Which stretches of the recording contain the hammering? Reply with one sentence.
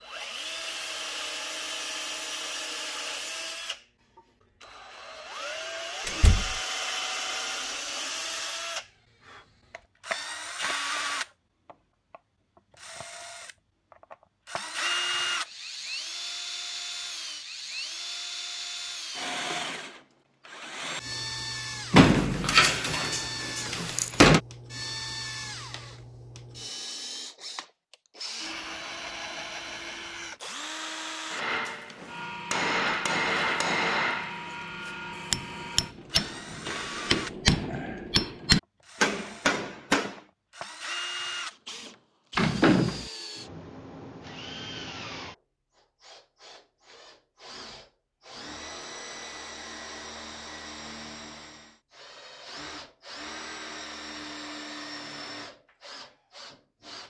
You can hear the hammering from 31.3 to 40.2 s.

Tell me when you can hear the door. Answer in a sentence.
The door can be heard from 6.0 to 6.6 s, from 21.9 to 24.4 s and from 42.4 to 43.1 s.